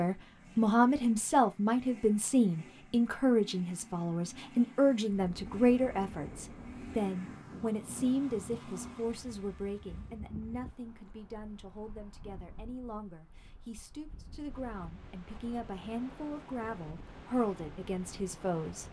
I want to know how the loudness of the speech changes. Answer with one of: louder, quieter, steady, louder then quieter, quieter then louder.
quieter then louder.